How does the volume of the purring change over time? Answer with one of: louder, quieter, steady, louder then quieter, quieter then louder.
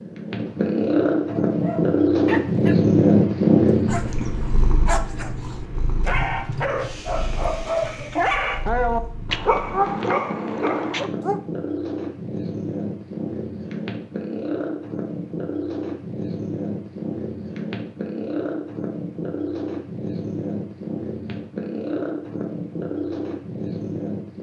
quieter then louder.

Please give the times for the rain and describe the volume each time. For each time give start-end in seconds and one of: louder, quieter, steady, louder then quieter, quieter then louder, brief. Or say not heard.
not heard.